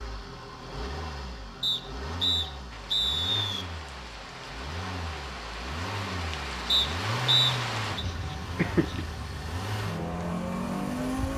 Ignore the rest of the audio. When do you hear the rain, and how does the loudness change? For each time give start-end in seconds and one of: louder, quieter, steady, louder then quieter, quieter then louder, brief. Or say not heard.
2.7-11.3 louder then quieter.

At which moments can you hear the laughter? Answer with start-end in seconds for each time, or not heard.
8.1-9.1.